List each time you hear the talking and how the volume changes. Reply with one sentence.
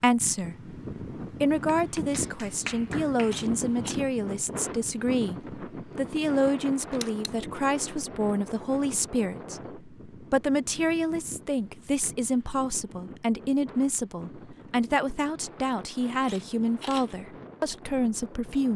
The talking can be heard from 0.0 to 18.7 s, at a steady volume.